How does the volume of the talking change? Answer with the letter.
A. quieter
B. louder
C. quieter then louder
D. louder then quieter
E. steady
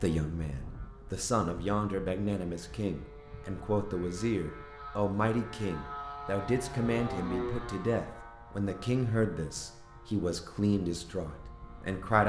E.